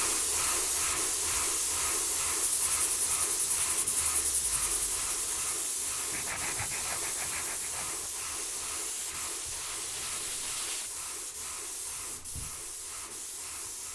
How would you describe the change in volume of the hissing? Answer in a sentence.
The loudness of the hissing goes down.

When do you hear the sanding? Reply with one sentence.
The sanding can be heard from 2.4 to 10.9 s.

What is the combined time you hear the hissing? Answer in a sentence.
The hissing can be heard for 14 seconds in total.